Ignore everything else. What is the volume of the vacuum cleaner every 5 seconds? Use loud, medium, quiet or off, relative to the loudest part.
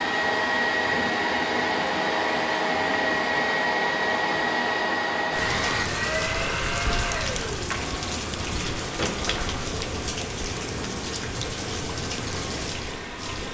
loud, medium, quiet.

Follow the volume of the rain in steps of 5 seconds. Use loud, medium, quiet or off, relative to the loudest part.
off, loud, loud.